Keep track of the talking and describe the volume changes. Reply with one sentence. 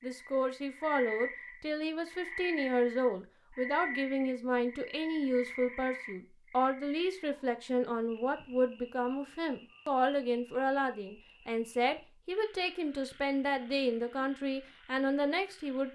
The volume of the talking stays about the same.